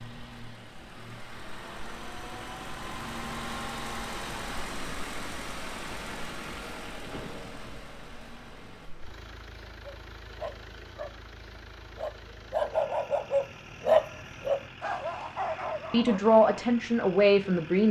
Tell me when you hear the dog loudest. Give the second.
14 s.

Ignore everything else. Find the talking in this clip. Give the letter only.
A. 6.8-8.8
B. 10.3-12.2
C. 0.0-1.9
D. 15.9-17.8
D.